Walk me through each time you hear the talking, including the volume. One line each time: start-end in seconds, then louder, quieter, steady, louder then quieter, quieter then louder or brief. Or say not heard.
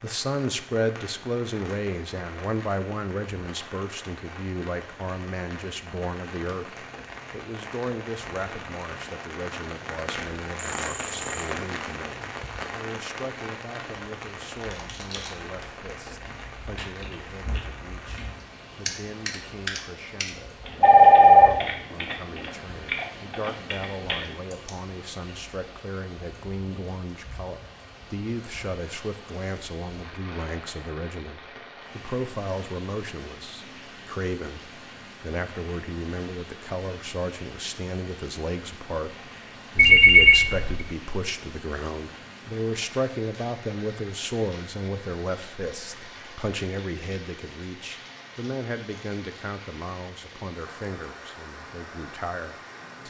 0.0-53.0 quieter then louder.